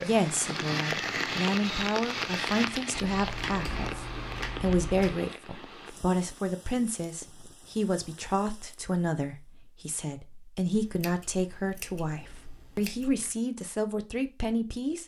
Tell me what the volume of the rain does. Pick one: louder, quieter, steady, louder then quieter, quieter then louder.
quieter.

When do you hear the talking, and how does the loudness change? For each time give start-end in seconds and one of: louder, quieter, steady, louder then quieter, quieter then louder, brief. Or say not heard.
0.0-15.0 steady.